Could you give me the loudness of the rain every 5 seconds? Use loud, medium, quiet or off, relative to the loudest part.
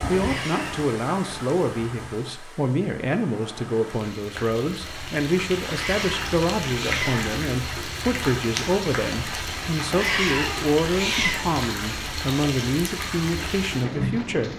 medium, loud, loud.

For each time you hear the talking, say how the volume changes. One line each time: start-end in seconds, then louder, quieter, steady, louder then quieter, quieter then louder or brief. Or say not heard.
0.1-14.5 steady.